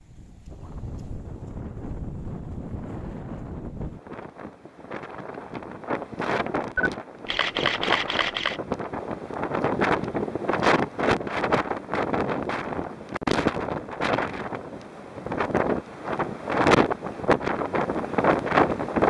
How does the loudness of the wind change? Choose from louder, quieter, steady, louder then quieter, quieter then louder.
louder.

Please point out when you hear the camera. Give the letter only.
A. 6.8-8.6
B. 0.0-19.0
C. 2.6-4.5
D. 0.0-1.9
A.